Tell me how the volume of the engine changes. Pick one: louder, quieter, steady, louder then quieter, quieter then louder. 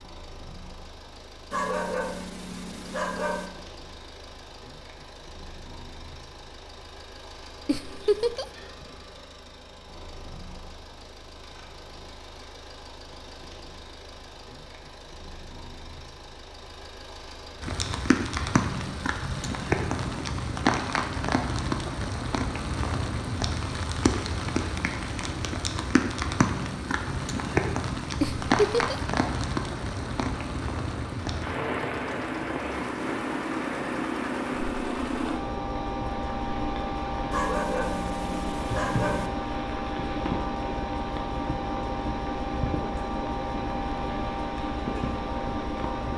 louder.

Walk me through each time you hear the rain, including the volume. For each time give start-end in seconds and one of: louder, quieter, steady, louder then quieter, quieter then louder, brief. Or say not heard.
17.6-46.1 quieter.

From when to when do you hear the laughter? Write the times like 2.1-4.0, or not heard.
7.7-8.4, 28.2-29.0.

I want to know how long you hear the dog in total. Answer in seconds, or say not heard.
4 s.